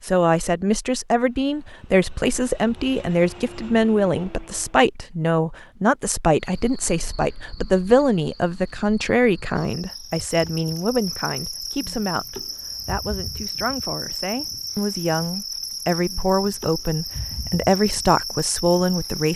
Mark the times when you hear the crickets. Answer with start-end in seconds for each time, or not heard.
6.3-19.3.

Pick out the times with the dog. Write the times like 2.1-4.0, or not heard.
not heard.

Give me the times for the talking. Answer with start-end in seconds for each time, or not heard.
0.0-19.3.